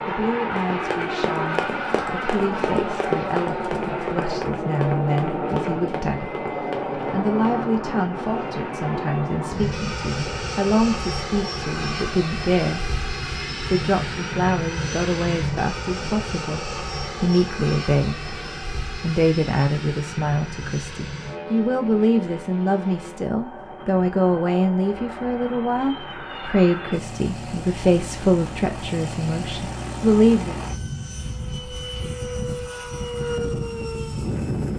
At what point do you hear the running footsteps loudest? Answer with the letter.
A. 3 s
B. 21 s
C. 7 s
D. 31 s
A.